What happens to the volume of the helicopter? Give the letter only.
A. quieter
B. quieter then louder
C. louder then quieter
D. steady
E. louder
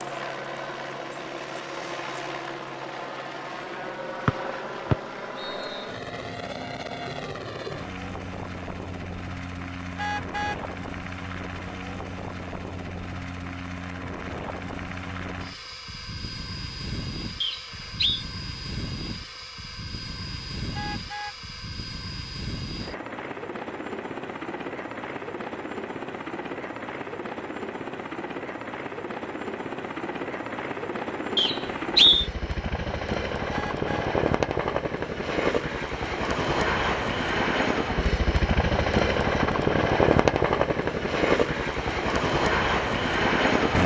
E.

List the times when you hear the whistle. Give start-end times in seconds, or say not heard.
4.2-5.8, 17.4-18.2, 31.4-32.3.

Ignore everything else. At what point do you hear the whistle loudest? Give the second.
32 s.